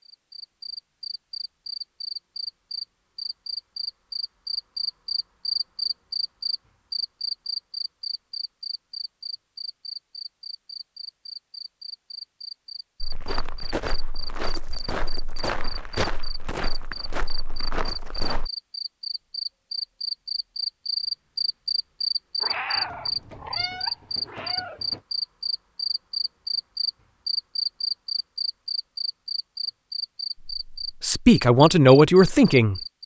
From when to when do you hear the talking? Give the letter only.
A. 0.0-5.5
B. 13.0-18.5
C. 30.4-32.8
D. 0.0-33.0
C.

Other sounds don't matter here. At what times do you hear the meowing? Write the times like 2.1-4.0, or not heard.
22.4-25.0.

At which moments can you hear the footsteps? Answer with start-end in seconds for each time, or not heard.
13.0-18.5.